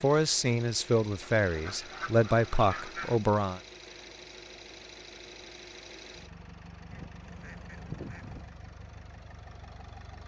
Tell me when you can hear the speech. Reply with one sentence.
You can hear the speech from 0.0 to 3.6 s.